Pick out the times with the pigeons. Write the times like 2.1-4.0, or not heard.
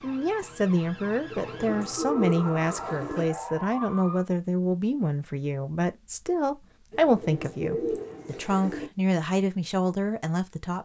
1.3-3.2, 6.9-8.9.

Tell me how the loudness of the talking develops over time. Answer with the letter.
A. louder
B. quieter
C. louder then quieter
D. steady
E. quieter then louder
D.